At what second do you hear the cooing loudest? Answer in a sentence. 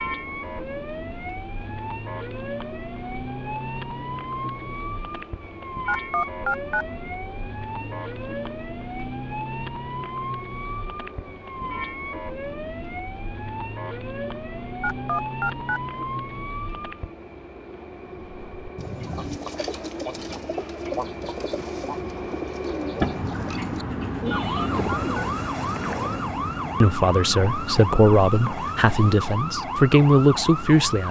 The volume of the cooing peaks at 23 seconds.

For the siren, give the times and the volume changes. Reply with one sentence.
The siren can be heard from 0.0 to 17.1 s, at a steady volume; and from 24.2 to 31.0 s, at a steady volume.